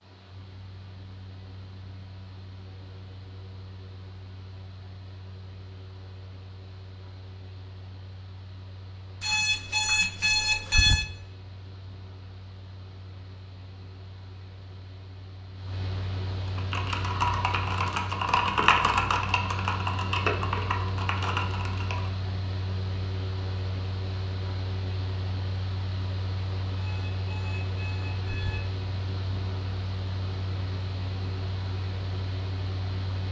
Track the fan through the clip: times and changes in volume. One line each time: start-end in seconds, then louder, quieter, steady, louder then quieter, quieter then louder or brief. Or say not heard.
0.0-33.2 louder.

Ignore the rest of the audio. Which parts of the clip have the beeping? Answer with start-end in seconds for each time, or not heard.
9.2-11.1, 26.8-28.7.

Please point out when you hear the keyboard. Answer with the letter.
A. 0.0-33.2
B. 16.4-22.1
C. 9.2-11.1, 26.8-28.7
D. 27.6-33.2
B.